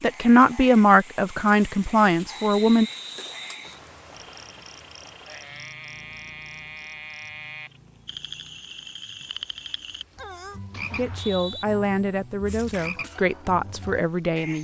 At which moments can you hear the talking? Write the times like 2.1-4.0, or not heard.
0.0-2.9, 10.9-14.5.